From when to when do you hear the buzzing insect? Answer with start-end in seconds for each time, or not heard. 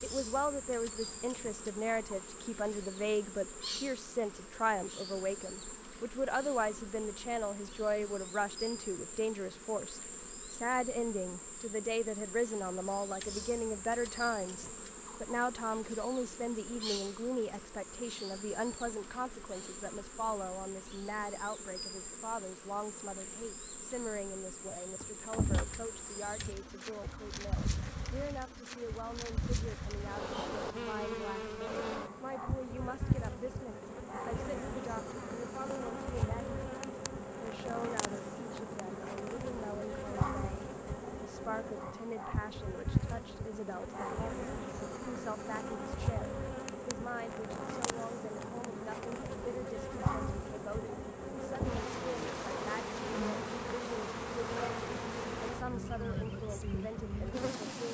0.0-57.8.